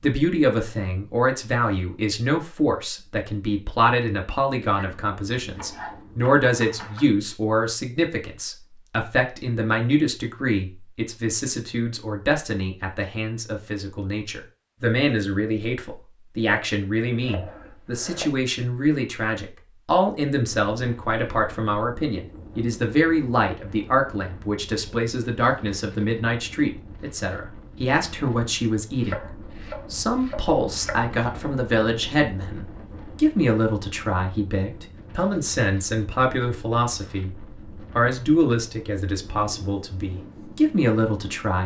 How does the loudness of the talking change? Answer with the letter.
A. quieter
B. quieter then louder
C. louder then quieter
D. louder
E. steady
E.